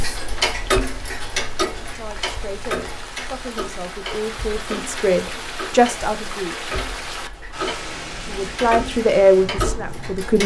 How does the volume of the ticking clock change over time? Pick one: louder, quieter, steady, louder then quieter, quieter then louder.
quieter then louder.